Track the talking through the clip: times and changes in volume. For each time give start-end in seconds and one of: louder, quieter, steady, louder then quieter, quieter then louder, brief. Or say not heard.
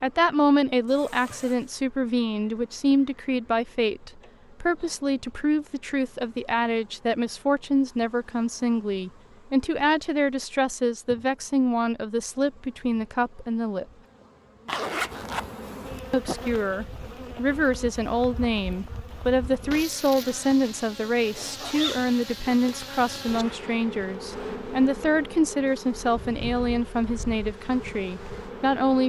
0.0-13.8 steady
16.1-29.0 steady.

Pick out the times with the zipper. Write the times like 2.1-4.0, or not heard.
0.8-1.8, 14.7-15.4, 21.3-23.4.